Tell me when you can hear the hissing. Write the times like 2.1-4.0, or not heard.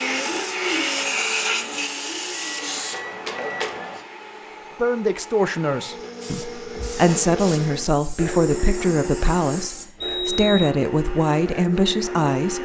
0.0-4.0, 6.2-9.8.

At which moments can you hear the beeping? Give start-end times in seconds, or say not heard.
2.4-3.8, 10.0-10.8.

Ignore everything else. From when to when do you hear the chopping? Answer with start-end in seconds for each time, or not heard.
not heard.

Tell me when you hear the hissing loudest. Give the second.
1 s.